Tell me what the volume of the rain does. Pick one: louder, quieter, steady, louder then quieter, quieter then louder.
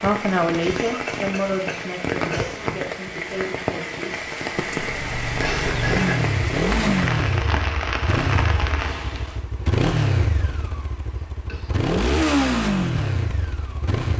steady.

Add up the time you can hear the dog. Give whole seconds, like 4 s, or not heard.
not heard.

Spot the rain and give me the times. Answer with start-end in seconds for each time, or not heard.
0.0-9.4.